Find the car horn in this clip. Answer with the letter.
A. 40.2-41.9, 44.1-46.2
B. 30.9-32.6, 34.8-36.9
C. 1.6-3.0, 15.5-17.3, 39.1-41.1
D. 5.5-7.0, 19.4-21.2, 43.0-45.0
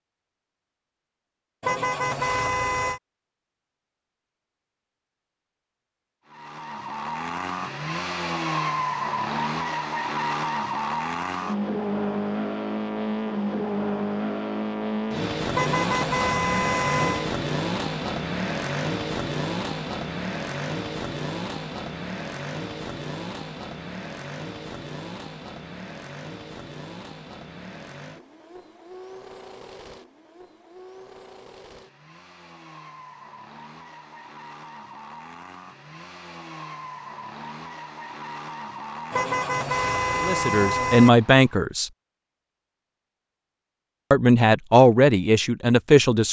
C.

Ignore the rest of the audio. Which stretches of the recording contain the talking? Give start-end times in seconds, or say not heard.
40.2-41.9, 44.1-46.2.